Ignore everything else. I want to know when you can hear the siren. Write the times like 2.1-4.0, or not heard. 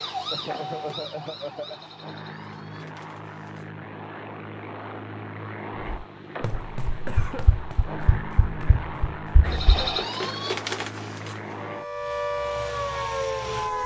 0.0-3.7, 9.4-13.8.